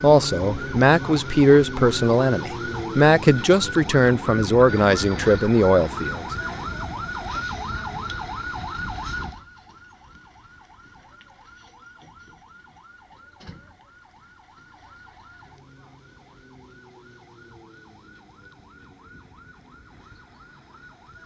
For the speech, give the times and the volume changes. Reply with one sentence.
The speech can be heard from 0.0 to 6.2 s, at a steady volume.